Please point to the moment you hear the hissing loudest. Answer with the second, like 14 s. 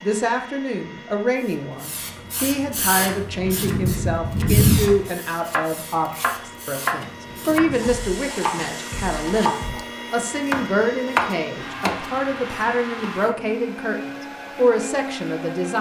4 s.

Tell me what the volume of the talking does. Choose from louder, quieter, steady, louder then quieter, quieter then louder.
steady.